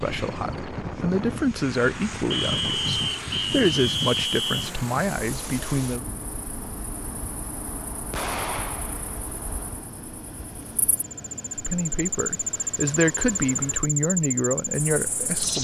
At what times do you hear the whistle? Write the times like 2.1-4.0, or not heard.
2.3-4.7.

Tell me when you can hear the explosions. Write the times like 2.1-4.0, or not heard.
8.1-9.2.